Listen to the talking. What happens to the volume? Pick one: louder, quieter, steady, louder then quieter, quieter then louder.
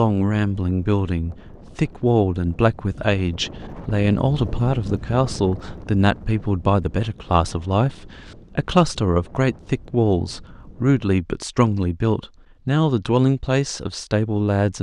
steady.